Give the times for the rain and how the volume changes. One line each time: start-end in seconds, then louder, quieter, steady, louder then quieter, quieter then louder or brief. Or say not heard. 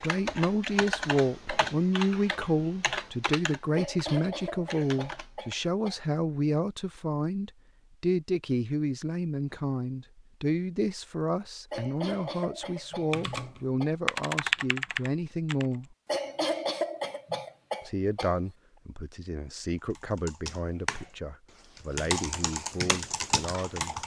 not heard.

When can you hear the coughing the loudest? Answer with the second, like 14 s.
17 s.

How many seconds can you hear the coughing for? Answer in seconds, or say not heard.
7 s.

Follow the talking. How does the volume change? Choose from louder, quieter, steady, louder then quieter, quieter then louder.
quieter.